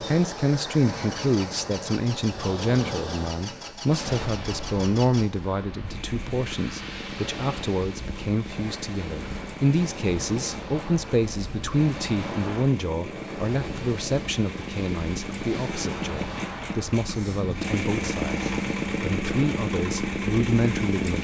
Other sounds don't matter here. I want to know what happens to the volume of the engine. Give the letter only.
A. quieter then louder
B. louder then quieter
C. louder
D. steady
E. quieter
C.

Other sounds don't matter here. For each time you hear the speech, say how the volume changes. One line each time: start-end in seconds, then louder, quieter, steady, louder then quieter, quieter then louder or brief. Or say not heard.
0.0-21.1 steady.